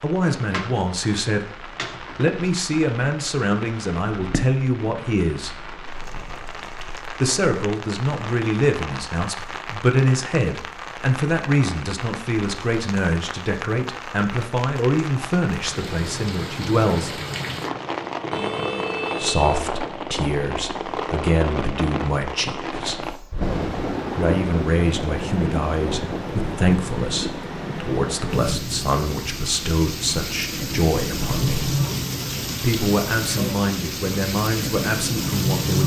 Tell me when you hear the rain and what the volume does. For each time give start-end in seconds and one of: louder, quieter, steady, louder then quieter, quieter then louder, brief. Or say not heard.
0.0-35.8 louder.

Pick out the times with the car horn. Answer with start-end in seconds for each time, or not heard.
18.3-19.6.